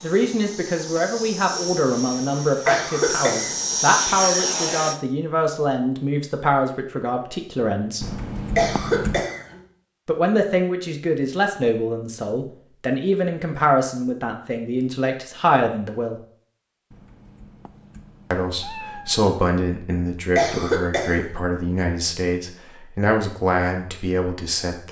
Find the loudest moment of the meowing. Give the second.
9 s.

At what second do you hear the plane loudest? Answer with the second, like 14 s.
4 s.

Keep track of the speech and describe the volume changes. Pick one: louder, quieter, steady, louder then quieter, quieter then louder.
steady.